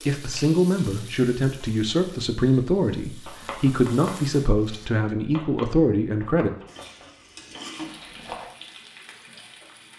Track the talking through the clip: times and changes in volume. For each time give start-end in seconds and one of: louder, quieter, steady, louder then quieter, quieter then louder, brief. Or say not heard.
0.1-6.5 steady.